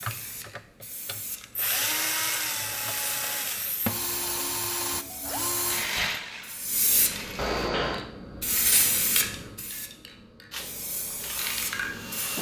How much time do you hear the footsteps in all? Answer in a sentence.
The footsteps can't be heard in this clip.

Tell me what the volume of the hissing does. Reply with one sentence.
The volume of the hissing goes up, then down.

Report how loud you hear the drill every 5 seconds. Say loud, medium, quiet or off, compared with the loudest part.
loud, loud, medium.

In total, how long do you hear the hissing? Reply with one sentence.
You can hear the hissing for 12 seconds altogether.